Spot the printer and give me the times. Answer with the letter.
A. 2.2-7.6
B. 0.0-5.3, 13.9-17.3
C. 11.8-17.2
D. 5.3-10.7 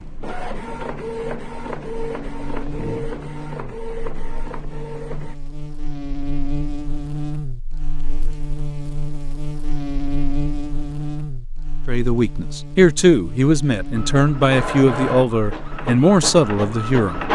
B.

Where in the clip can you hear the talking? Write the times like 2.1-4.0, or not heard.
11.8-17.2.